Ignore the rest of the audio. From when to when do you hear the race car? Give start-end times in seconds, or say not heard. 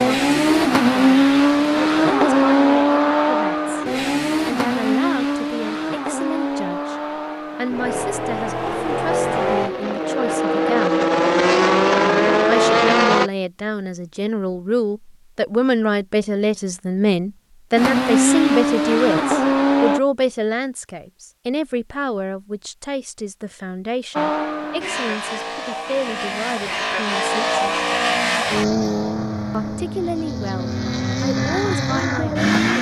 0.0-13.3, 17.8-20.0, 24.1-32.7.